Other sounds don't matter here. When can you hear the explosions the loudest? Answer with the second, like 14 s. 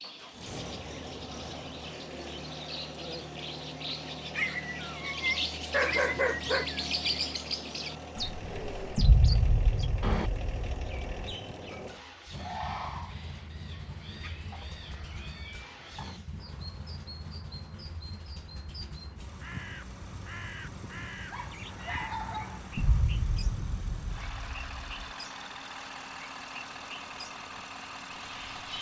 9 s.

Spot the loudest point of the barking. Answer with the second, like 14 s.
6 s.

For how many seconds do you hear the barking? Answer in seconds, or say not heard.
4 s.